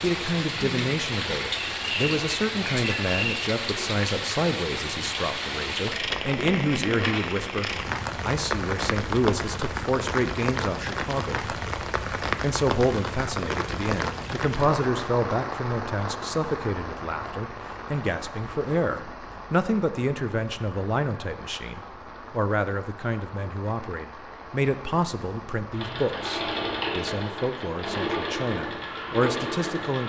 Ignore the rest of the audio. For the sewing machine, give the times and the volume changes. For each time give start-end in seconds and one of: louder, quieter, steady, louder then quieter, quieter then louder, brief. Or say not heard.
25.7-30.0 steady.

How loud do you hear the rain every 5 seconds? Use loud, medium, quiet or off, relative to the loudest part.
loud, loud, loud, medium, quiet, quiet.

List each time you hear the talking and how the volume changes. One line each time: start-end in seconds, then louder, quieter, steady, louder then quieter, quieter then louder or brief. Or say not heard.
0.0-11.6 steady
12.3-30.0 steady.